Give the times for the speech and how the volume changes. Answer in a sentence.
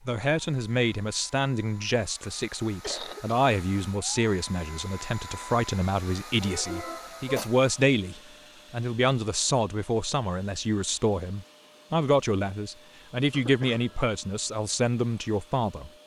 You can hear the speech from 0.1 to 15.9 s, at a steady volume.